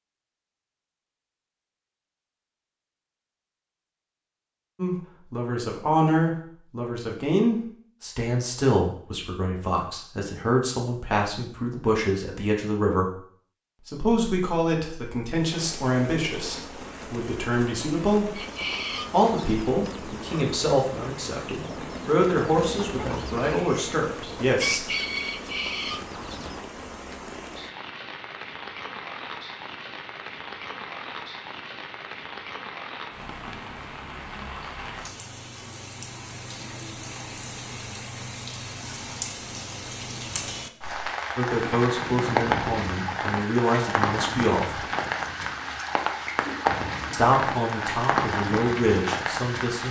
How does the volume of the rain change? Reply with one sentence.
The loudness of the rain goes up.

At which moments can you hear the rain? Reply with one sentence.
The rain can be heard from 15.3 to 49.8 s.